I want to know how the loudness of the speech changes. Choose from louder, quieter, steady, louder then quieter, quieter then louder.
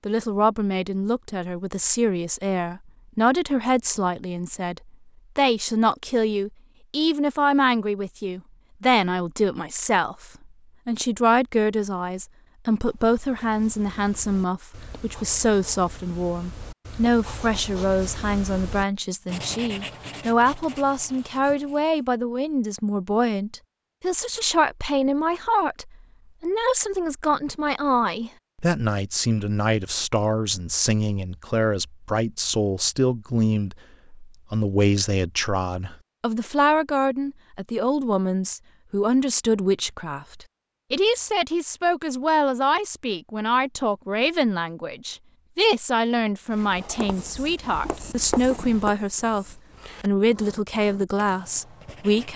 steady.